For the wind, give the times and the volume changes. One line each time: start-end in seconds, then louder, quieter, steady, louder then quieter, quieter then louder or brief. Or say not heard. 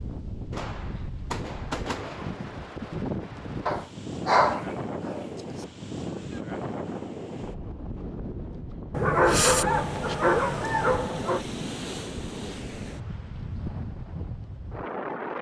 0.0-15.3 steady.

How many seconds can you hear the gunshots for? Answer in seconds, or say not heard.
2 s.